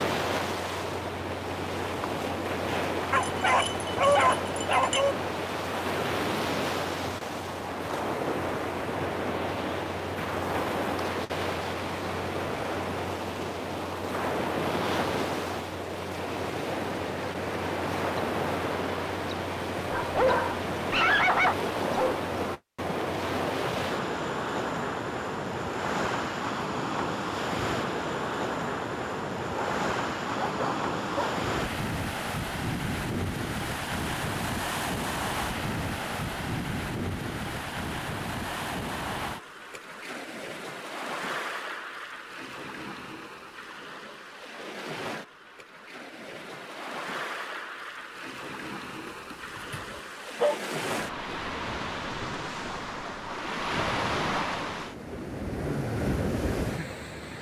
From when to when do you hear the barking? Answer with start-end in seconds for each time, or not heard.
3.1-5.2, 19.9-22.1, 29.6-31.4, 49.0-50.6.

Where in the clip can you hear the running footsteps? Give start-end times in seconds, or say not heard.
not heard.